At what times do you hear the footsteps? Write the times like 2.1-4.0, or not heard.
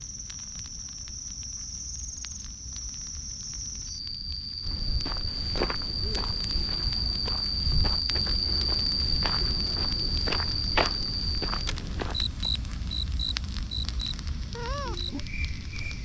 4.6-12.2.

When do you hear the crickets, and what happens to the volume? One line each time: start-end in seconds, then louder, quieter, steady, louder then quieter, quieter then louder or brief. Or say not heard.
0.0-16.0 louder then quieter.